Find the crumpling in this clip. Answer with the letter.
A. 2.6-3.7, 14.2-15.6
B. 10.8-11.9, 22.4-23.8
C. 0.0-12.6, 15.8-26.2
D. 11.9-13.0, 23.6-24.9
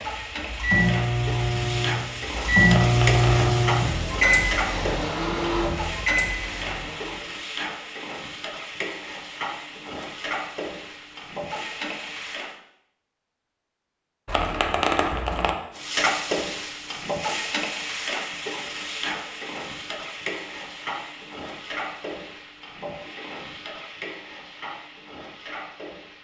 A.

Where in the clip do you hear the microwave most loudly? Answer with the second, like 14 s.
3 s.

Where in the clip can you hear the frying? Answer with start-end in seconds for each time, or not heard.
0.0-12.6, 15.8-26.2.